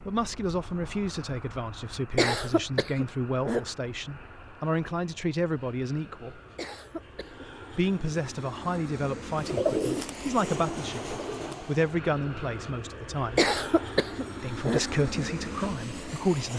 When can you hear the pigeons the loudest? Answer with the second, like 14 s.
10 s.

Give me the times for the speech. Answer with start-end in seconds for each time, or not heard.
0.1-6.4, 7.7-13.4, 14.4-16.5.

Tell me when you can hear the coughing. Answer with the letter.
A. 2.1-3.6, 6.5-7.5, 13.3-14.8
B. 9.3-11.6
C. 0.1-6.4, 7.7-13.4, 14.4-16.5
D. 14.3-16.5
A.